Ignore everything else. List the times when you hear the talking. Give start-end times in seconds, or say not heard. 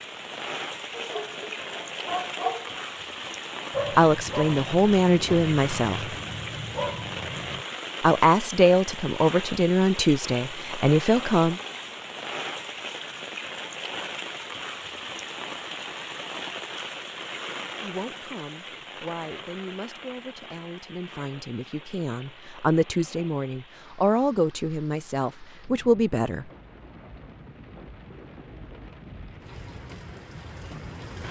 3.9-6.2, 8.0-11.6, 17.8-26.5.